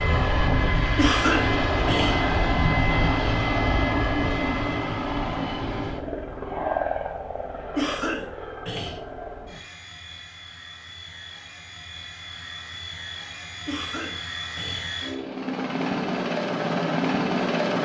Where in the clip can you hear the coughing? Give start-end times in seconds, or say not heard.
0.9-2.4, 7.8-8.9, 13.7-15.1.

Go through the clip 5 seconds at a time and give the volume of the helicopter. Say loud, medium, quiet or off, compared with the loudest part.
loud, medium, quiet, loud.